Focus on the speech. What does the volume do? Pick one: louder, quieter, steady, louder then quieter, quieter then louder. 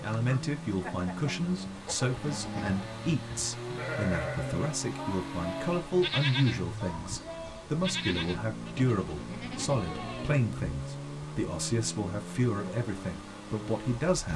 steady.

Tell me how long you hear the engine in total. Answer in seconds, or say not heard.
14 s.